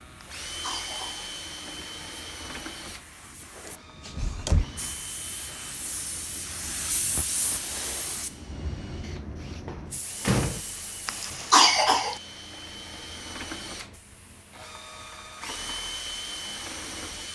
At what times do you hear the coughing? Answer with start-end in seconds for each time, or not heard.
0.5-1.3, 11.1-12.2.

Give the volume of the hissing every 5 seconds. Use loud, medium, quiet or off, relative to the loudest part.
medium, loud, medium, quiet.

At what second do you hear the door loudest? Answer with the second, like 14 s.
10 s.